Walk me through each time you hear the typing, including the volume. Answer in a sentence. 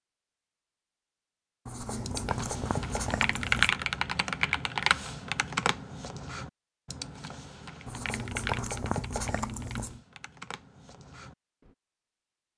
The typing can be heard from 2.0 to 11.3 s, getting quieter.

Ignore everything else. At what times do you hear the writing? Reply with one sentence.
You can hear the writing from 1.6 to 3.9 s and from 7.8 to 10.0 s.